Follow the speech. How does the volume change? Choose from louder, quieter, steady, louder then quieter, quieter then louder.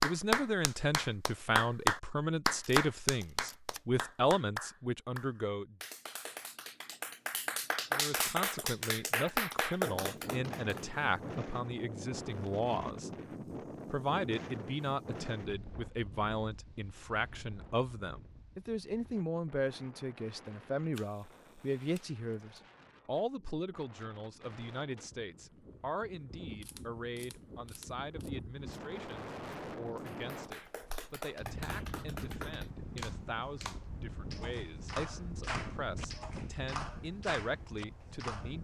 quieter.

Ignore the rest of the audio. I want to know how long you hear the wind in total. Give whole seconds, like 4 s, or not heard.
29 s.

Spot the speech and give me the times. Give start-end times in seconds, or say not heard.
0.0-5.8, 7.9-13.1, 13.8-38.5.